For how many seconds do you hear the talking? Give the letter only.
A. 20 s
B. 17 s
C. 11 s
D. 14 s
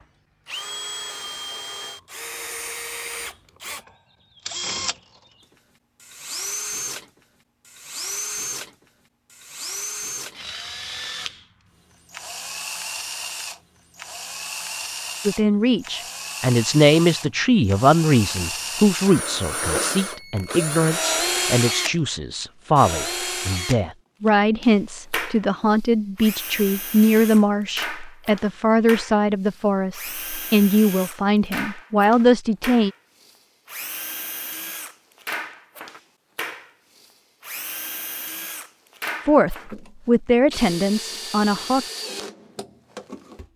A.